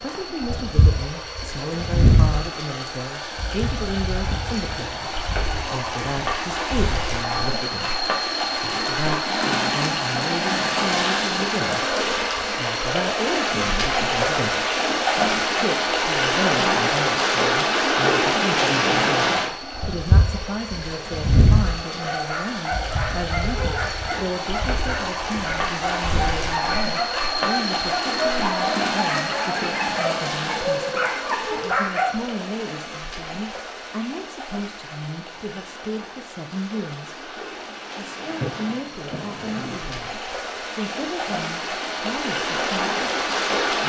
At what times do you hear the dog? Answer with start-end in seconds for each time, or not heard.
21.9-32.1.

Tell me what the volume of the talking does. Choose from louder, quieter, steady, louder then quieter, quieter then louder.
steady.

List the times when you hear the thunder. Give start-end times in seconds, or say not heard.
38.4-40.0.